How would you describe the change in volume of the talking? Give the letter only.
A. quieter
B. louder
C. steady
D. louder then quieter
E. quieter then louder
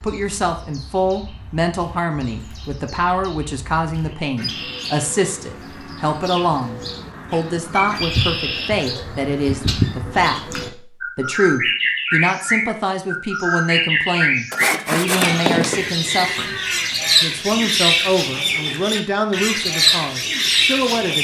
C.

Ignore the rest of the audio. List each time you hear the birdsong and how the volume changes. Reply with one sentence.
The birdsong can be heard from 0.0 to 21.1 s, getting louder.